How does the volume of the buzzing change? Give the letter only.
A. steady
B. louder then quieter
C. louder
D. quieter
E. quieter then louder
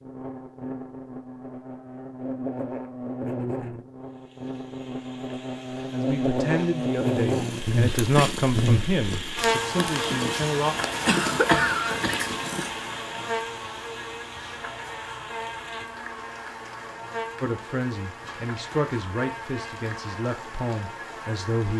B.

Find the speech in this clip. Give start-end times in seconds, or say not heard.
5.7-10.8, 17.4-21.7.